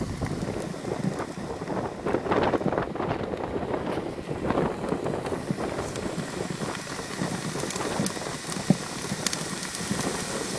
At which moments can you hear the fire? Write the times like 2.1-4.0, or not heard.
0.0-10.5.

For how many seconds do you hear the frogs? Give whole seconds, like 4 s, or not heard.
not heard.